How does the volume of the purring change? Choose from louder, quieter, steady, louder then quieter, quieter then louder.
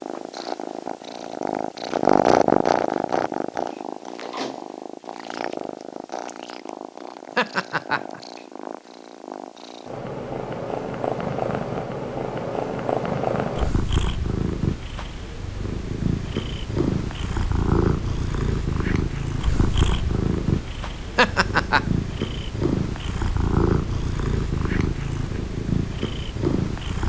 quieter then louder.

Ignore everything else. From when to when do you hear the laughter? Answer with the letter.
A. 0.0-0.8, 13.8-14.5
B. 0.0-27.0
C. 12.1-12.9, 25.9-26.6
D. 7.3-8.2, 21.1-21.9
D.